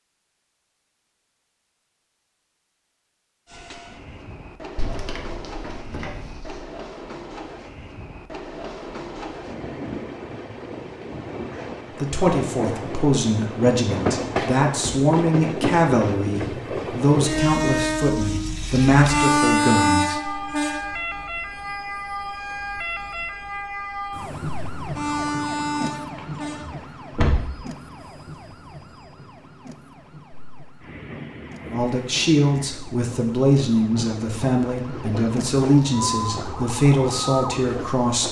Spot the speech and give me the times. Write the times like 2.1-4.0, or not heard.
12.0-20.4, 31.7-38.2.